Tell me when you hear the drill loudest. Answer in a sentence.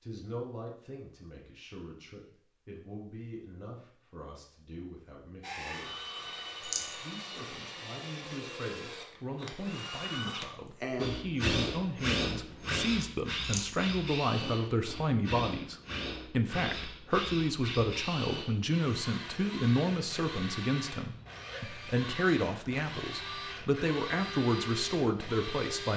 The volume of the drill peaks at 12 seconds.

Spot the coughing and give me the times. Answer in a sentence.
You can't hear the coughing here.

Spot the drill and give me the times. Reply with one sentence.
You can hear the drill from 5.4 to 25.9 s.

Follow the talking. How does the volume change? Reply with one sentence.
The volume of the talking goes up.